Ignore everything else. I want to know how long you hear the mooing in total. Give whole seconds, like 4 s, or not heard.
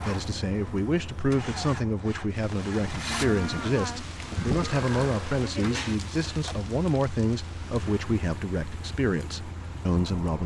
4 s.